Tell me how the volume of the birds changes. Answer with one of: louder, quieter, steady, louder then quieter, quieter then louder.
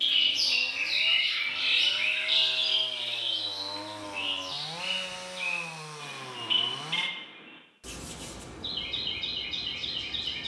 quieter.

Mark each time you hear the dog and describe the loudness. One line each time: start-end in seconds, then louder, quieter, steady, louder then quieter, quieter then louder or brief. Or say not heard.
not heard.